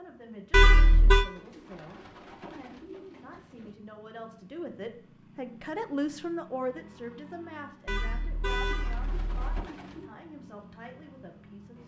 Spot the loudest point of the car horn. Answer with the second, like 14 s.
1 s.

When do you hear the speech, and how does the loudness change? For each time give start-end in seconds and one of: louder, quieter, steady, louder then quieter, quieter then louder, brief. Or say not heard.
0.0-11.8 louder then quieter.